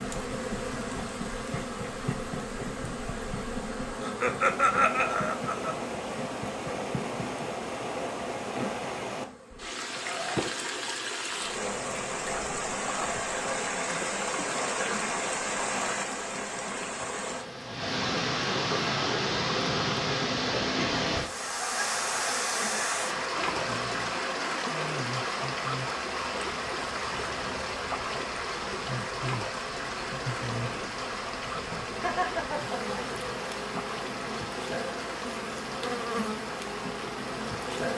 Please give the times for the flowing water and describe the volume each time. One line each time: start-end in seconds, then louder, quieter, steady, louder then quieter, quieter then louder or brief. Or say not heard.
0.0-37.9 louder then quieter.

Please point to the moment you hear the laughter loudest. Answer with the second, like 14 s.
5 s.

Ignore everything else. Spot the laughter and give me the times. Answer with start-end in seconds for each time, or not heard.
4.0-5.8, 32.0-33.0.